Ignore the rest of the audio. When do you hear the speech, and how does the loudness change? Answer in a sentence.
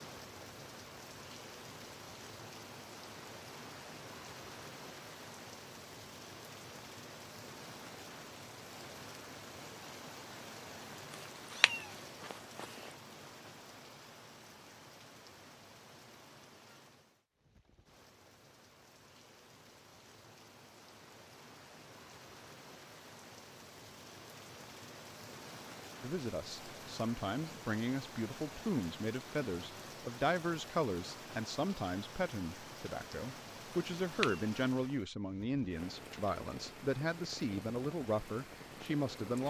You can hear the speech from 26.0 to 39.4 s, at a steady volume.